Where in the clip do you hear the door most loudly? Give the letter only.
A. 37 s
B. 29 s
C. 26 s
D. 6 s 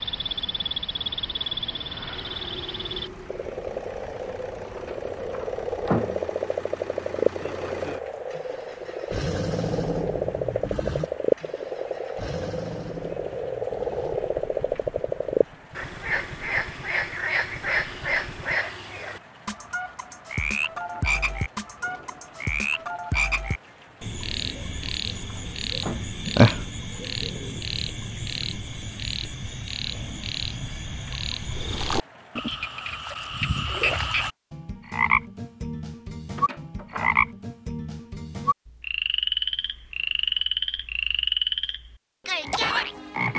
D.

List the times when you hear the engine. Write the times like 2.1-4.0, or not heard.
2.1-18.6.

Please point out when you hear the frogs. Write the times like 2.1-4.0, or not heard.
0.0-43.3.